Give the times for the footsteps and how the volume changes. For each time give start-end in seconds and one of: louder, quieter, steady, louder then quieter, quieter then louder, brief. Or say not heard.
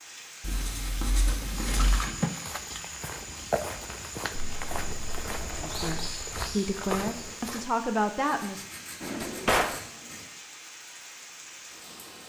1.5-7.7 steady.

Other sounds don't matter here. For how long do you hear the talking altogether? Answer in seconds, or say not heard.
3 s.